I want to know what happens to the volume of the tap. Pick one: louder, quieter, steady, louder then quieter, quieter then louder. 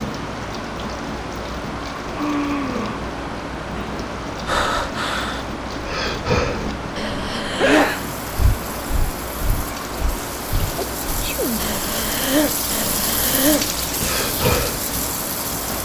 louder.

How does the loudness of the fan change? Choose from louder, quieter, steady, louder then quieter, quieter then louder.
steady.